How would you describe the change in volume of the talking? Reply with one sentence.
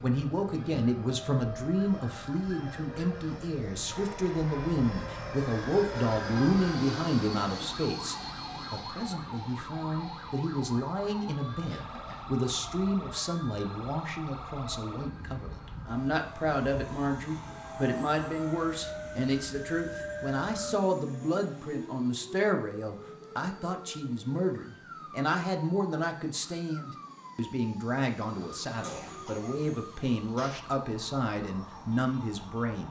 The volume of the talking stays about the same.